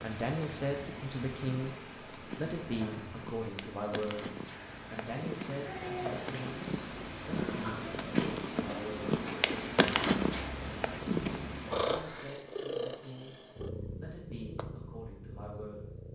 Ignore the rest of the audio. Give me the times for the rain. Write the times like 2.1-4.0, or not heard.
0.0-12.2.